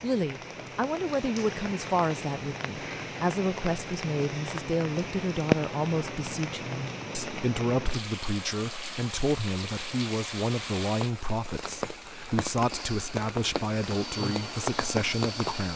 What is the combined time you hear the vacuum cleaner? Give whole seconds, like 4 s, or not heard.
3 s.